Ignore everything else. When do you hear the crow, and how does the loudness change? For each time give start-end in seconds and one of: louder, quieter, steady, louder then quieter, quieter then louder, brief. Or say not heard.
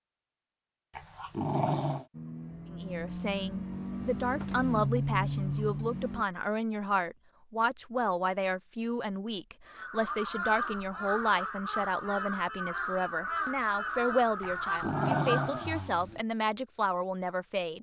9.7-15.8 steady.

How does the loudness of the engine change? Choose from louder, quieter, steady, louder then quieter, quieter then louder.
louder.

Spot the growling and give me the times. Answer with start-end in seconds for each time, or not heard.
0.9-2.0, 14.4-16.2.